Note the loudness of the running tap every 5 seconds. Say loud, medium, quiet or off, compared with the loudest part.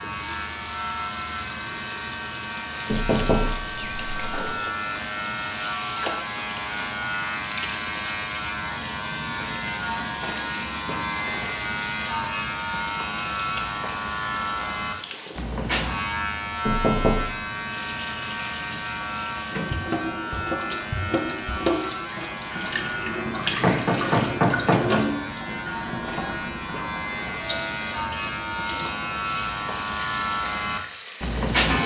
medium, medium, medium, medium, loud, medium, medium.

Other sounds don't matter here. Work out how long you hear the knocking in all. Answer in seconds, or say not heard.
4 s.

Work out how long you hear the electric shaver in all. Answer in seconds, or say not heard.
32 s.